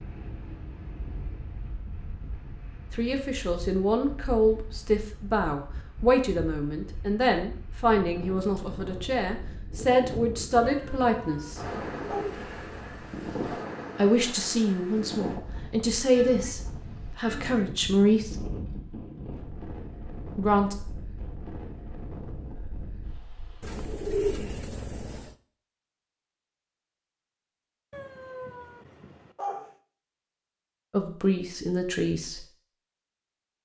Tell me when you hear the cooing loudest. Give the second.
24 s.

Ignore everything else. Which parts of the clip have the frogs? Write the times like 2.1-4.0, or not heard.
not heard.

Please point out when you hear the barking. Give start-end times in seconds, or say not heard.
10.6-12.2, 27.9-29.8.